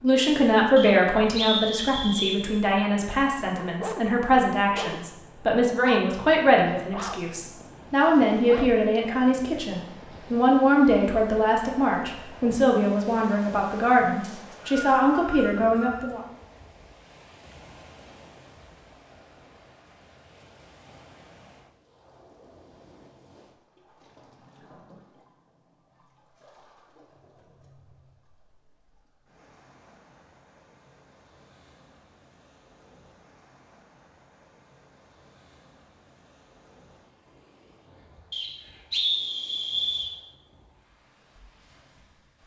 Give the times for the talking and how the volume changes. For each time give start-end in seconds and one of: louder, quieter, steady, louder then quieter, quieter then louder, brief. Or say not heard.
0.0-16.2 steady.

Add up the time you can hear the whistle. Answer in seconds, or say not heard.
5 s.